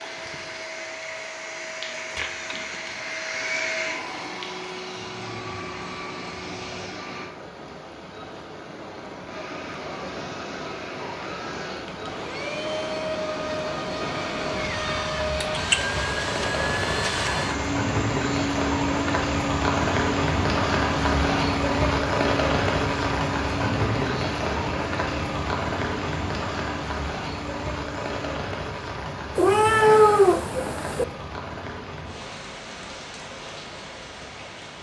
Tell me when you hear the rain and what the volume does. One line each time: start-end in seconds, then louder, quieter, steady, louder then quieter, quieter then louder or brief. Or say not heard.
0.0-34.7 louder then quieter.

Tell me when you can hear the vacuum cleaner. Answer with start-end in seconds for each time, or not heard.
0.0-7.3, 9.2-28.4.